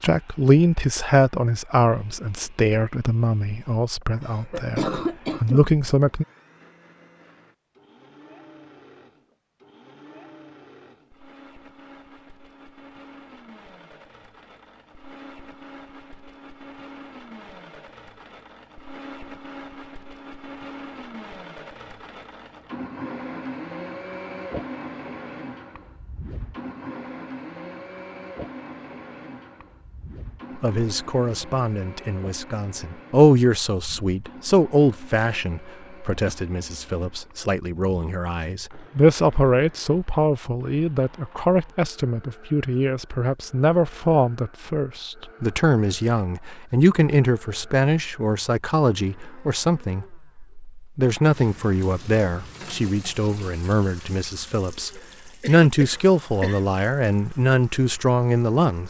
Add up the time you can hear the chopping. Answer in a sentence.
The chopping can't be heard in this clip.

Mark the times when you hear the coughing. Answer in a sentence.
The coughing can be heard from 4.2 to 5.7 s and from 55.0 to 56.6 s.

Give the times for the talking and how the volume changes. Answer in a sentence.
The talking can be heard from 0.0 to 6.2 s, getting quieter then louder; and from 30.6 to 58.8 s, at a steady volume.